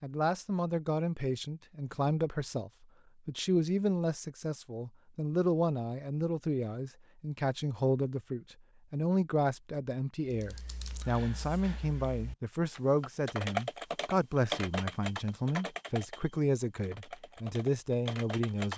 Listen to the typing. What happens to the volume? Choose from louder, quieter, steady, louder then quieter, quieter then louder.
louder then quieter.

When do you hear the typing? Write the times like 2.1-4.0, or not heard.
10.3-18.7.